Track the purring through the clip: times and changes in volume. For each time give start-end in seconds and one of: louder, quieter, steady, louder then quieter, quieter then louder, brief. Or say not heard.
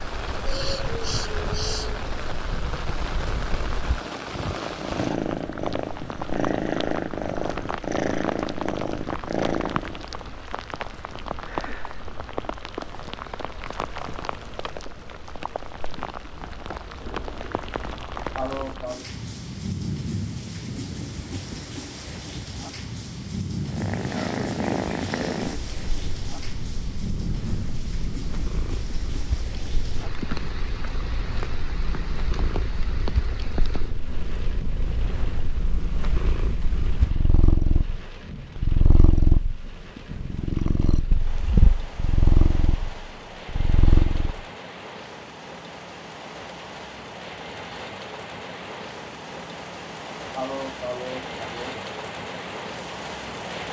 0.2-10.1 louder
23.6-44.5 quieter then louder.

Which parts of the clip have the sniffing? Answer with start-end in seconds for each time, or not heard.
0.4-2.0, 18.4-19.1, 50.3-51.8.